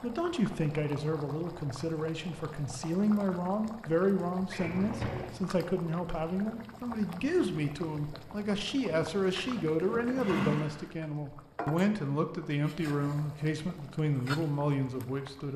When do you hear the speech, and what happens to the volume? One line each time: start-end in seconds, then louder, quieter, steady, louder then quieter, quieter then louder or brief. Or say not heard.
0.0-15.5 steady.